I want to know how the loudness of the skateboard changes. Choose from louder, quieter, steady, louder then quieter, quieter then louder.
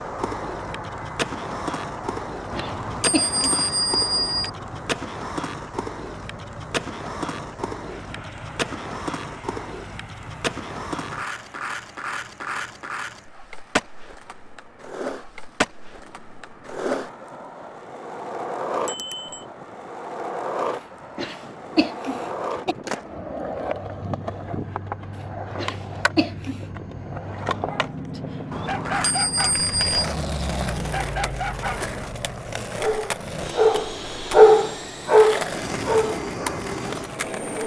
steady.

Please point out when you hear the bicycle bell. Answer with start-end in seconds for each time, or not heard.
2.5-4.5, 18.9-19.4, 28.5-29.9.